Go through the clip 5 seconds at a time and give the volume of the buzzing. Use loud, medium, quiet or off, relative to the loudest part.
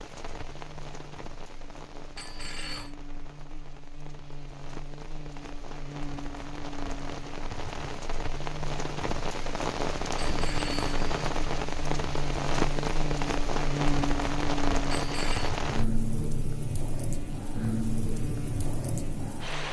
quiet, medium, loud, medium.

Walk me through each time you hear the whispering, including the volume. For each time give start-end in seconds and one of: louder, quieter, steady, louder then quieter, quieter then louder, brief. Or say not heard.
not heard.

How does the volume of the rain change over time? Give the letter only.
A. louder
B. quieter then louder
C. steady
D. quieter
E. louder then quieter
A.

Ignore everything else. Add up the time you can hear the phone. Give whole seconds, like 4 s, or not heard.
2 s.